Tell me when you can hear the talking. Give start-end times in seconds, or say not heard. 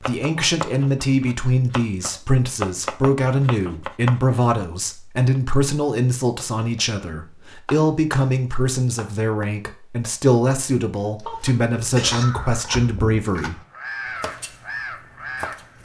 0.0-13.6.